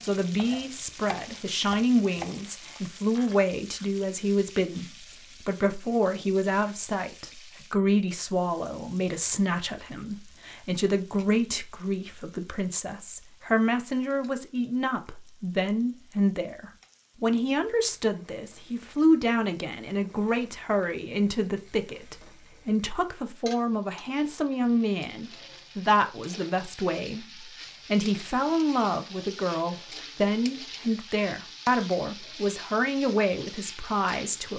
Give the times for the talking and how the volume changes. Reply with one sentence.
You can hear the talking from 0.0 to 34.5 s, at a steady volume.